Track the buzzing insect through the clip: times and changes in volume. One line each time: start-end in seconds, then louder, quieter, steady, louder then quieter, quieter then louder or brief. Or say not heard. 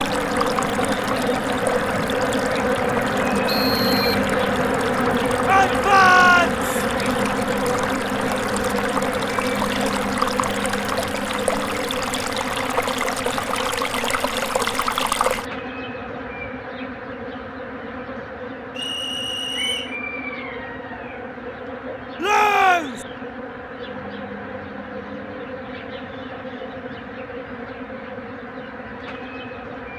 0.0-29.9 quieter.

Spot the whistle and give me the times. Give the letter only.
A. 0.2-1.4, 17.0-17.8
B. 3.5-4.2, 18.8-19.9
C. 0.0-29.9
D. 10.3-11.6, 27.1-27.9
B.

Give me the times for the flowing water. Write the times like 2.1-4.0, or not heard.
0.0-15.5.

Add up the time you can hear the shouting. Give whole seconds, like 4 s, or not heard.
2 s.